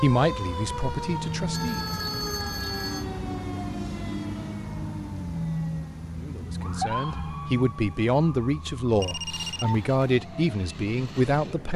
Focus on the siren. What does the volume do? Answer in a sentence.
The volume of the siren goes down.